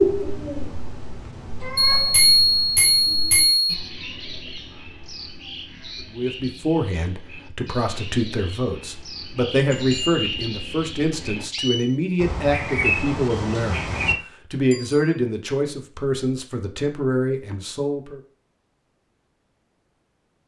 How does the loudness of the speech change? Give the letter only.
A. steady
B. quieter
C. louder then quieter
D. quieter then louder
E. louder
A.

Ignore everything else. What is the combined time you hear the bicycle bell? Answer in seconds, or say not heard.
3 s.